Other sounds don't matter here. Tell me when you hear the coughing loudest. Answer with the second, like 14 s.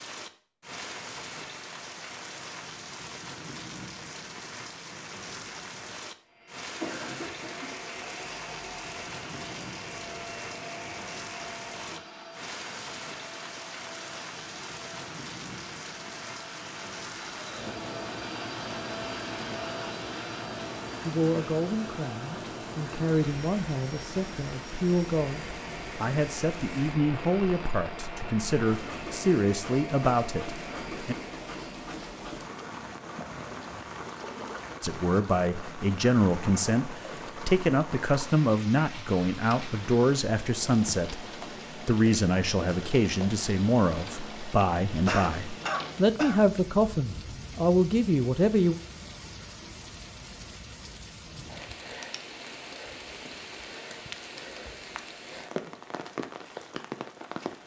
45 s.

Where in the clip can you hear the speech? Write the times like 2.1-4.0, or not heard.
21.0-31.1, 34.8-48.8.